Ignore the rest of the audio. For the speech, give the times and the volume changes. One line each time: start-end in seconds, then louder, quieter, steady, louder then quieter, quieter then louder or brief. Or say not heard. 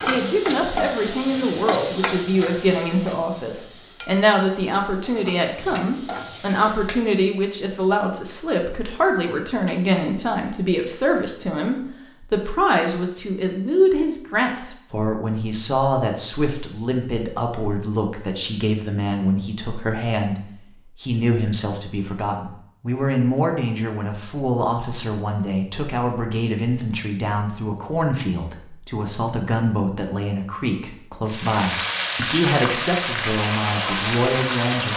0.0-34.9 steady.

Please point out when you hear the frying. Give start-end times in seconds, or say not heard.
0.0-7.0, 31.2-34.9.